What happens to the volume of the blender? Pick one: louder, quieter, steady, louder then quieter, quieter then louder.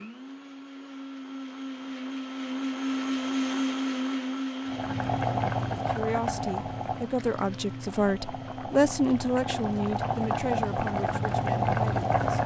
louder then quieter.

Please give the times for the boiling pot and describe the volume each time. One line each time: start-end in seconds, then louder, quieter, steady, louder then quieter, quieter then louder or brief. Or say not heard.
4.7-12.4 quieter then louder.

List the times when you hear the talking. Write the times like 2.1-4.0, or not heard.
5.8-12.4.